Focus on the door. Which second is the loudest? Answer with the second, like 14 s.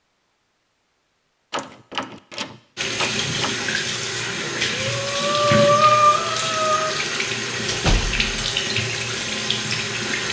8 s.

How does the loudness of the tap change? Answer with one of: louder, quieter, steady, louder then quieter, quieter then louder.
steady.